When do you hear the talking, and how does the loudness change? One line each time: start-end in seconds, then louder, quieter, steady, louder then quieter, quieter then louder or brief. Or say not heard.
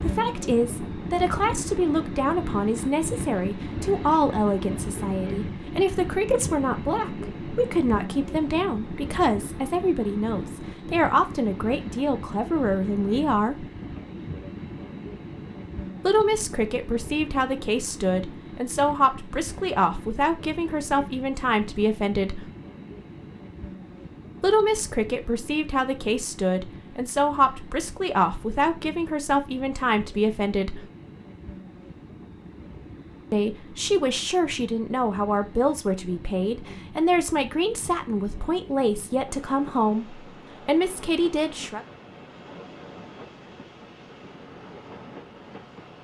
0.1-13.7 steady
16.1-22.4 steady
24.4-30.9 steady
33.3-41.9 steady.